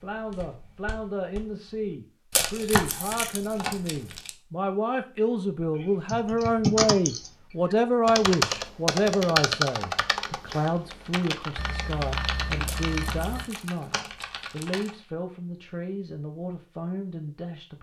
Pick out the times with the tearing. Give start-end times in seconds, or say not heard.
2.3-4.3, 12.7-14.9.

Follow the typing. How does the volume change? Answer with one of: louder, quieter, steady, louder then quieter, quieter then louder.
quieter.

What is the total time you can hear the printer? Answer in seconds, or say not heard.
not heard.